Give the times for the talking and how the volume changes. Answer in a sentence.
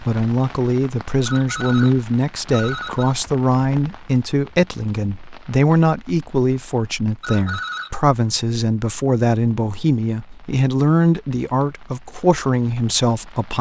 You can hear the talking from 0.0 to 13.5 s, at a steady volume.